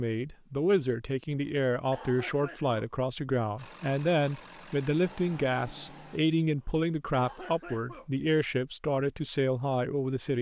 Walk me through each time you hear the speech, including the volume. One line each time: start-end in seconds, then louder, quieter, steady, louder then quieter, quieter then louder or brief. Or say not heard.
0.0-10.3 steady.